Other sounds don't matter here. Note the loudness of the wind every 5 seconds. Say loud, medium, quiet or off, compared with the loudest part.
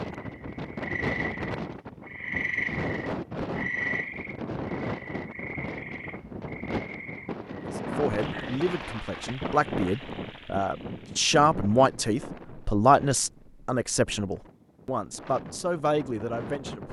loud, loud, medium, medium.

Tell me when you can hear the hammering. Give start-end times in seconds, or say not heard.
not heard.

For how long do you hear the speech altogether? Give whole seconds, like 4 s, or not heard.
9 s.